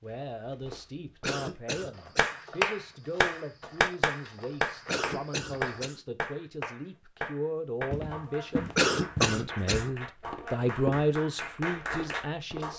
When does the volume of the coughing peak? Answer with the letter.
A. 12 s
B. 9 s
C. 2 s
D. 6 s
B.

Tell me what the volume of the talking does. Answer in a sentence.
The loudness of the talking goes up.